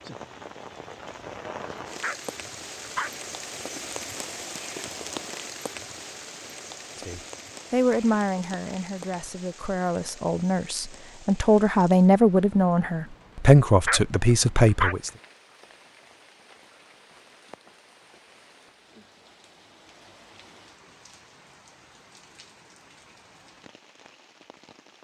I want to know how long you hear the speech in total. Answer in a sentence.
You can hear the speech for 8 seconds altogether.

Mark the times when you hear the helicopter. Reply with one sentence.
You can't hear the helicopter here.